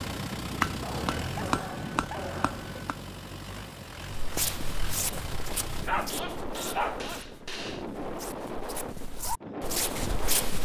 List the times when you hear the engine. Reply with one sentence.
You can hear the engine from 0.0 to 5.8 s.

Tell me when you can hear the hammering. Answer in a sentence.
The hammering can be heard from 0.6 to 3.0 s and from 6.1 to 7.9 s.